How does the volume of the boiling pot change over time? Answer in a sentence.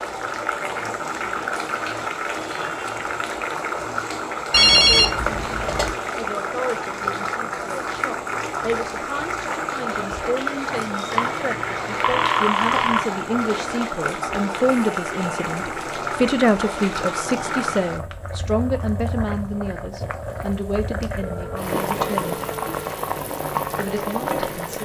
The loudness of the boiling pot stays about the same.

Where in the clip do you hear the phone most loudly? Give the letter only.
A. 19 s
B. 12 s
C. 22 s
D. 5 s
D.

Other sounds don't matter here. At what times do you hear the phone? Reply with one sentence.
You can hear the phone from 4.5 to 6.0 s, from 11.1 to 13.0 s and from 21.2 to 22.8 s.